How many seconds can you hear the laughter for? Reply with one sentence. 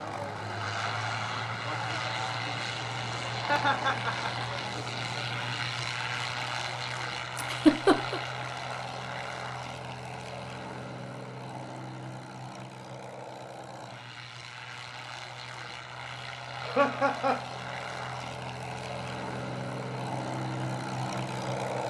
The laughter can be heard for 3 seconds in total.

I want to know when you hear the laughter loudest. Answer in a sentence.
The loudest moment of the laughter is at 8 seconds.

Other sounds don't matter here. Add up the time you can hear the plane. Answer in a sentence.
The plane can be heard for 22 seconds in total.